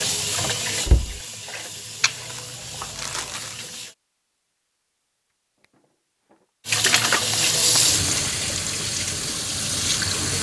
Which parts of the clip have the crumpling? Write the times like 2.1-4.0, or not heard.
2.0-3.5, 6.8-8.3.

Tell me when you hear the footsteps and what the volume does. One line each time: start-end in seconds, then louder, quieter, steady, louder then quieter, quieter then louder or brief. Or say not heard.
not heard.